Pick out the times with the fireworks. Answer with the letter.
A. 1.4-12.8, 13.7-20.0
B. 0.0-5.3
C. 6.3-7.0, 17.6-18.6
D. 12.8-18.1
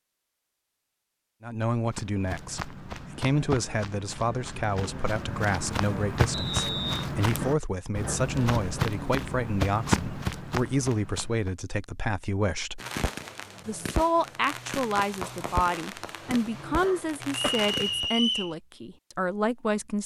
D.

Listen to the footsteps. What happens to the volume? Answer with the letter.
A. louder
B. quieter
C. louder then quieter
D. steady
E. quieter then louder
A.